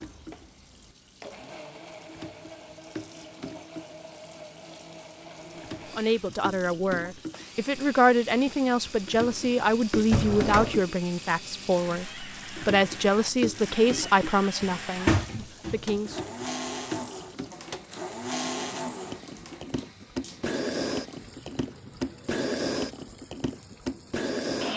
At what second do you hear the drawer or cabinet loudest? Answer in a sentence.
The loudest moment of the drawer or cabinet is at 15 seconds.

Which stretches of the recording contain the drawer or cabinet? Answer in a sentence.
The drawer or cabinet can be heard from 10.1 to 10.8 s and from 14.6 to 16.1 s.